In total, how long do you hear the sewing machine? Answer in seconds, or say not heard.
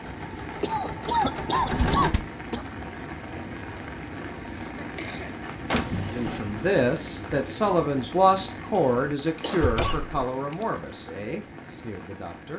2 s.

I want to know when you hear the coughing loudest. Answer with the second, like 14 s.
1 s.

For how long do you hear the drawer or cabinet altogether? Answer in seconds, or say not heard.
2 s.